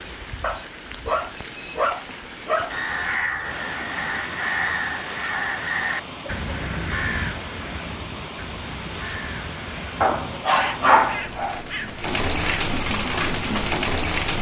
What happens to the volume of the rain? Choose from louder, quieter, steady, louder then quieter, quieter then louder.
louder.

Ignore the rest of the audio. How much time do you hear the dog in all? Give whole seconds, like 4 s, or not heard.
4 s.